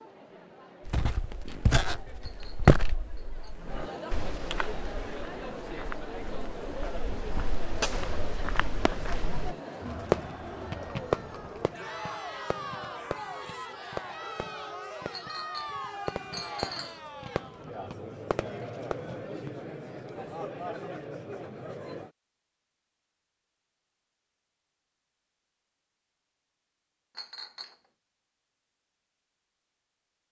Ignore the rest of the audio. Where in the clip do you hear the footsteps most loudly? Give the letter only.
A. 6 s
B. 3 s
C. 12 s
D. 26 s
B.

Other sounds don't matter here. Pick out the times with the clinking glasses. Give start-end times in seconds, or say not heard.
2.2-3.5, 15.1-17.0, 27.1-27.8.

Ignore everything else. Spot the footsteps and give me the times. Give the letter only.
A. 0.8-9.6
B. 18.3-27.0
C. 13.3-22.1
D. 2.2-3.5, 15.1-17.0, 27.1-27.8
A.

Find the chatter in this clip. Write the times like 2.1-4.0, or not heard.
0.0-22.1.